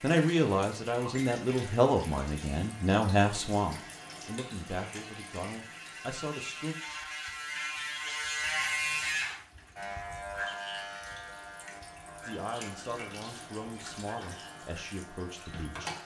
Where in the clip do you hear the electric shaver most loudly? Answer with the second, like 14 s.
9 s.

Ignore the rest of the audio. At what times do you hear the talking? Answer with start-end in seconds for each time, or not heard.
0.0-6.8, 12.2-16.0.